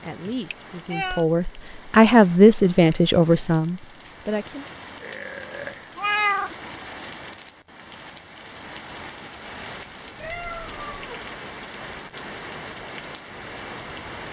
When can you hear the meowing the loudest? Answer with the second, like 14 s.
6 s.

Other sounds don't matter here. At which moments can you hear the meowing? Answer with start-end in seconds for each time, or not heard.
0.3-1.2, 6.0-6.5, 10.2-11.2.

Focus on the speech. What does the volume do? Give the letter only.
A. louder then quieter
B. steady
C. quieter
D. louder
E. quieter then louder
A.